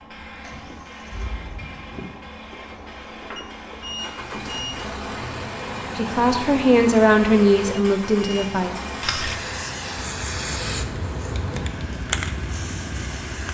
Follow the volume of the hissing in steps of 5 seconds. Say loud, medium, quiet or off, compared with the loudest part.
medium, loud, loud.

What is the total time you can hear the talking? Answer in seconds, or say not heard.
3 s.